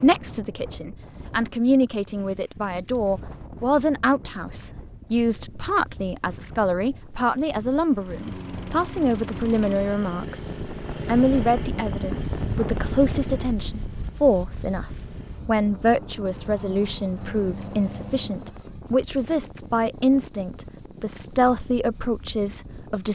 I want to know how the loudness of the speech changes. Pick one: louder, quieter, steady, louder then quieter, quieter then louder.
steady.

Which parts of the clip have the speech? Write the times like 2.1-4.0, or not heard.
0.0-10.4, 11.1-23.0.